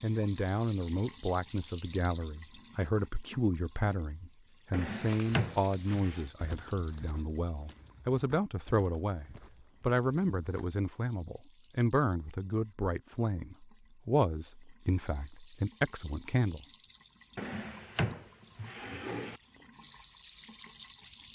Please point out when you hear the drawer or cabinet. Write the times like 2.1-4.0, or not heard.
4.7-6.2, 17.4-19.4.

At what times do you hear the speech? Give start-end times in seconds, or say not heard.
0.0-16.6.